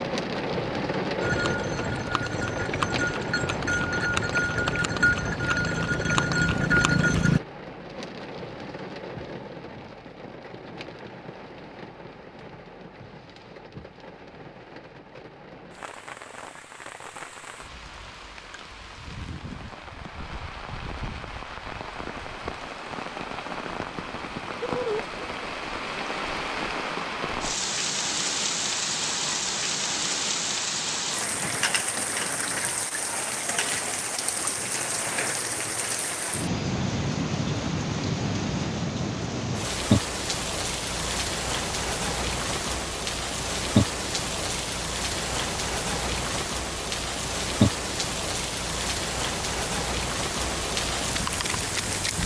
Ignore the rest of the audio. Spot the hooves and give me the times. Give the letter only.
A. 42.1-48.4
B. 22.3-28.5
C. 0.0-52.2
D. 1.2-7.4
D.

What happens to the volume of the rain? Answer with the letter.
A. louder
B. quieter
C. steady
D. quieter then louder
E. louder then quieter
D.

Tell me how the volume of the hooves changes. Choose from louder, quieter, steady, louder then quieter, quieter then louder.
louder.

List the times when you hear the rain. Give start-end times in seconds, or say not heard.
0.0-52.2.